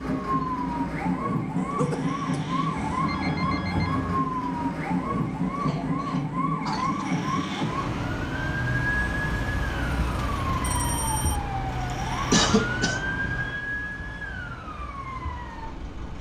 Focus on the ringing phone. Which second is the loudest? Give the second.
4 s.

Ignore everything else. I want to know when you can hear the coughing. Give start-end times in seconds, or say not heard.
1.6-3.1, 5.5-7.1, 12.3-13.0.